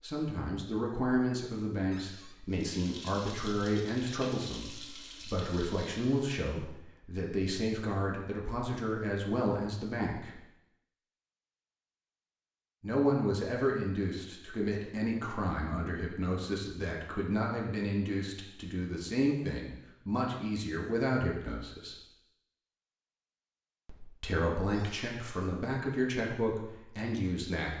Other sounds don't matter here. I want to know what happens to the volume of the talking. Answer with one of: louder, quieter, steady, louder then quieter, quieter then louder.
steady.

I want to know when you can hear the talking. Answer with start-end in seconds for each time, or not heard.
0.0-10.3, 12.8-21.9, 23.9-27.7.